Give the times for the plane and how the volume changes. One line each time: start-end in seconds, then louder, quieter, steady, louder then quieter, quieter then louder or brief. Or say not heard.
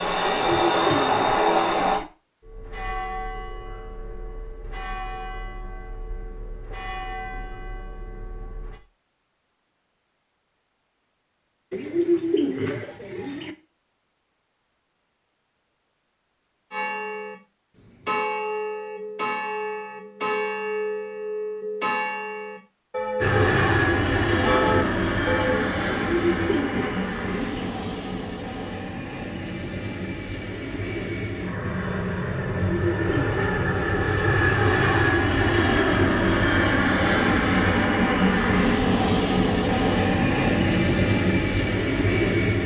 0.0-2.0 brief
23.2-42.6 quieter then louder.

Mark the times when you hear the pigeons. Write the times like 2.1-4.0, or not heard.
0.2-2.0, 11.7-13.6, 25.9-27.7, 32.5-34.3.